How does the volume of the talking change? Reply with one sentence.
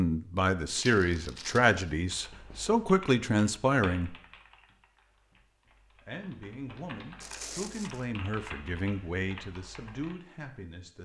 The loudness of the talking goes down.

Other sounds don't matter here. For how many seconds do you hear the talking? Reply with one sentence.
You can hear the talking for 9 seconds altogether.